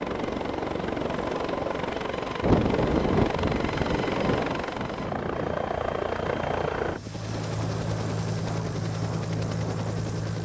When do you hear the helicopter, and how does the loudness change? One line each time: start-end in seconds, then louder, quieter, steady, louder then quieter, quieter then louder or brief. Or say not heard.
0.0-10.4 steady.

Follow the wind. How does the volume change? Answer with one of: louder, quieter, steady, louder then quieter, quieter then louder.
quieter.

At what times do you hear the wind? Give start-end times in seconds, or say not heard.
2.4-10.4.